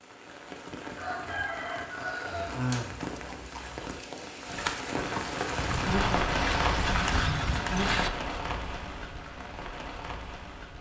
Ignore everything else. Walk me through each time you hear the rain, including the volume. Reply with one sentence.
The rain can be heard from 0.0 to 10.7 s, getting louder then quieter.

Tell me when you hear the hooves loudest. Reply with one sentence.
The volume of the hooves peaks at 7 seconds.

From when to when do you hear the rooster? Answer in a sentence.
The rooster can be heard from 0.9 to 2.9 s.